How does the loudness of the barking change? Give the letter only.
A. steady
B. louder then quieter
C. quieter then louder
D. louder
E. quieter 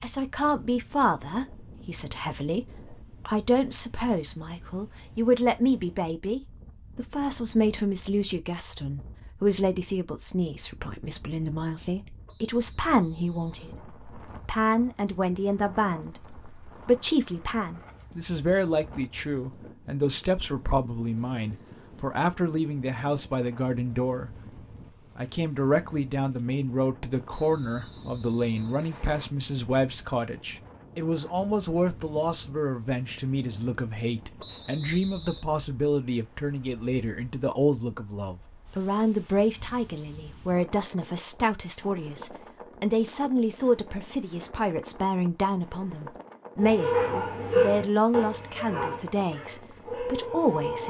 C.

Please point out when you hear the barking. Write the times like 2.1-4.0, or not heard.
46.5-50.8.